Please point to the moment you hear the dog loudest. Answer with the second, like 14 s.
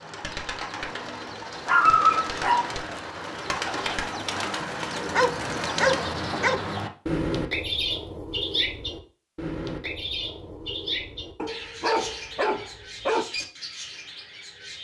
2 s.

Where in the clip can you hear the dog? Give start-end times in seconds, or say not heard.
1.6-2.8, 5.2-6.6, 11.3-13.2.